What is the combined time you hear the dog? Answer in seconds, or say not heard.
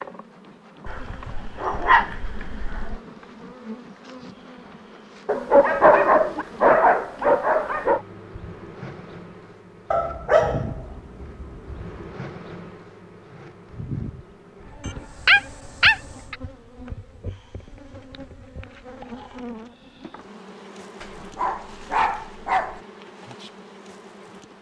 10 s.